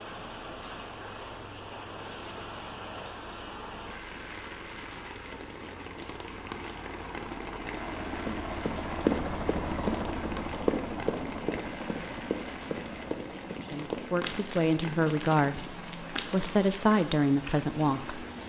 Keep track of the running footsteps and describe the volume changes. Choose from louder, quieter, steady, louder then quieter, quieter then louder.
quieter.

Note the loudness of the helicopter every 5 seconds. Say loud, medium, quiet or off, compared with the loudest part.
medium, loud, loud, medium.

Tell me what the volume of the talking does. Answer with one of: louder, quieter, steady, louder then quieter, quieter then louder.
quieter then louder.